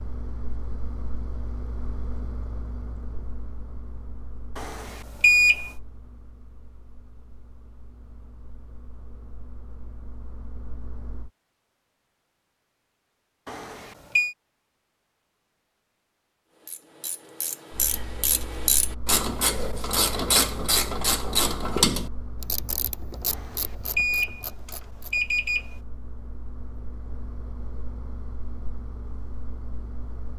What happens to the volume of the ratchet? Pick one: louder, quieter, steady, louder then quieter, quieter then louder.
louder then quieter.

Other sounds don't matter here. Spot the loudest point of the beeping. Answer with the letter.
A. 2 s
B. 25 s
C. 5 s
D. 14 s
C.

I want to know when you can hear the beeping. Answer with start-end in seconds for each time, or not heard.
4.5-5.7, 13.4-14.3, 23.2-25.8.